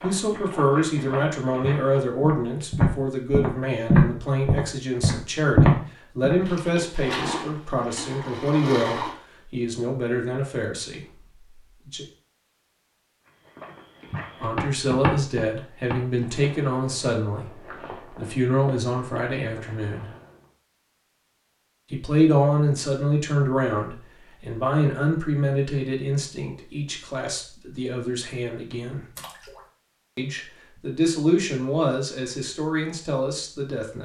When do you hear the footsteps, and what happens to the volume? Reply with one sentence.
The footsteps can be heard from 0.0 to 6.3 s, getting louder; and from 13.2 to 20.4 s, getting louder then quieter.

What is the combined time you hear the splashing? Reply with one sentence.
You can hear the splashing for 3 seconds altogether.